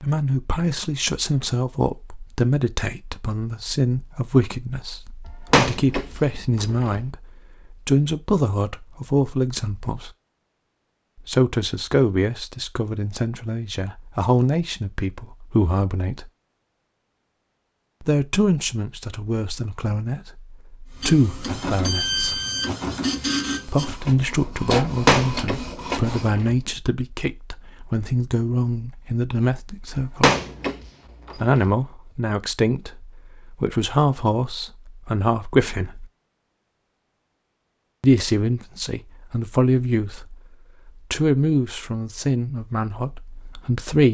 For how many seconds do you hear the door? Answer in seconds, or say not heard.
5 s.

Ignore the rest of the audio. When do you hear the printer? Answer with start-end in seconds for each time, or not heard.
20.9-26.4.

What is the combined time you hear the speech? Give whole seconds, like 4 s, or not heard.
37 s.